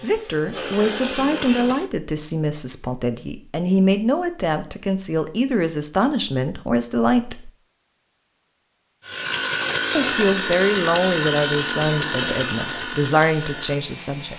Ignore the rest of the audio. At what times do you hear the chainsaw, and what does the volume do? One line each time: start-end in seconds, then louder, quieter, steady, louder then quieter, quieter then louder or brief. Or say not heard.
0.0-1.9 brief
9.1-14.3 quieter.